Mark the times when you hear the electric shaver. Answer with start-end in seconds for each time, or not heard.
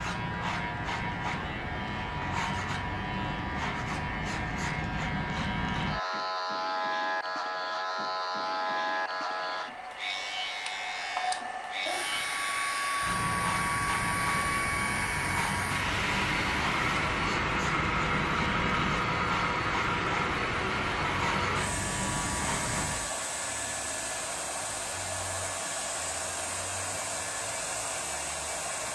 0.0-23.1.